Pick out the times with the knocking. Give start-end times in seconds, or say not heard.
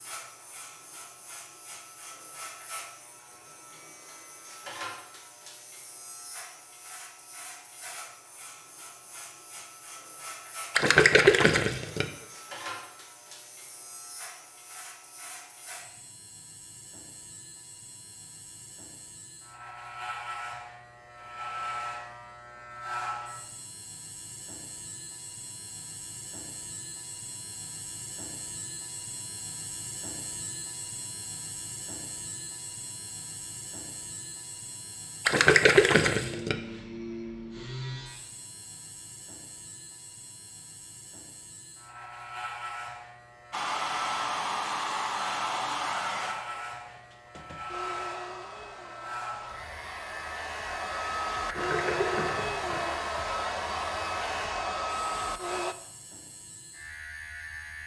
not heard.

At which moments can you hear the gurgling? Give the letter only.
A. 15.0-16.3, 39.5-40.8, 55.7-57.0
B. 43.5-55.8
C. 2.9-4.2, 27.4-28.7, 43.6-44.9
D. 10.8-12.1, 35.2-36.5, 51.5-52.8
D.